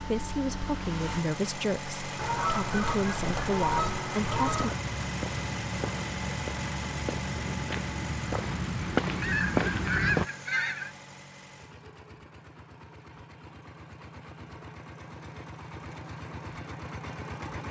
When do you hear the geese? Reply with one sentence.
You can hear the geese from 2.1 to 4.8 s and from 9.2 to 10.9 s.